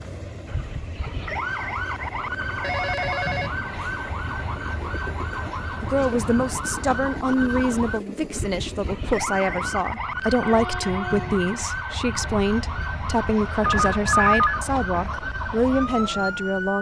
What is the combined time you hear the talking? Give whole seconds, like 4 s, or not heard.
11 s.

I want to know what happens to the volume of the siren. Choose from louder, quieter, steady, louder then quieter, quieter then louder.
steady.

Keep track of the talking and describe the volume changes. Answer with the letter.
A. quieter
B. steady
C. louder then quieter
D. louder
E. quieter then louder
B.